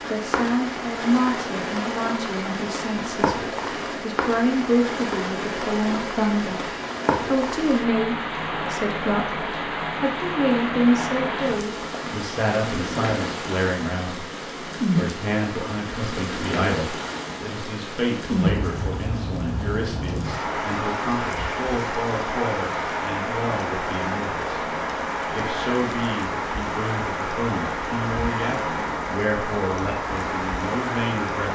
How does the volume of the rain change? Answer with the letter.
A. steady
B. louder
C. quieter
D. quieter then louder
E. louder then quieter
A.